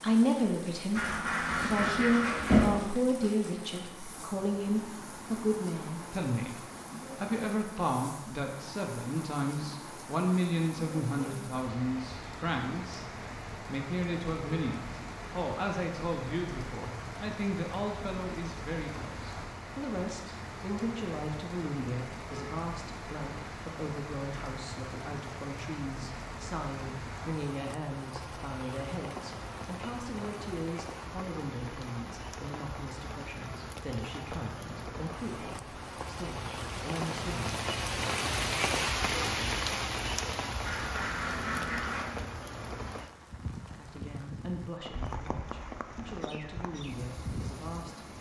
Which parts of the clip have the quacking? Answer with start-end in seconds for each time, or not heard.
0.9-2.7, 40.6-42.2.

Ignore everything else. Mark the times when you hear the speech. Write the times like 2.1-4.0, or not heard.
0.0-37.6, 43.8-48.1.